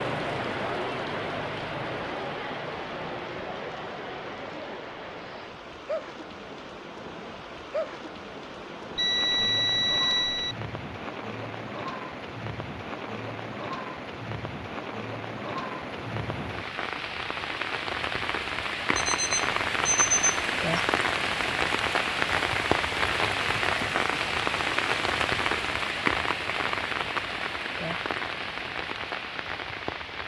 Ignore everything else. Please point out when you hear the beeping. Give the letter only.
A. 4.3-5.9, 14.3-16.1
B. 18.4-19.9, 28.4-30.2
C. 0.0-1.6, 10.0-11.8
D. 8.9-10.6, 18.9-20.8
D.